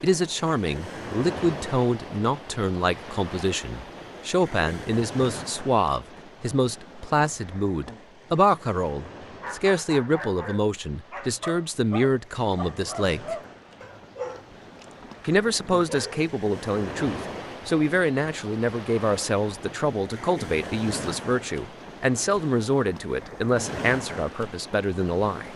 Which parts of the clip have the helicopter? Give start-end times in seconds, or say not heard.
not heard.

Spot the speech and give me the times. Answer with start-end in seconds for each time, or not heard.
0.0-13.3, 15.2-25.5.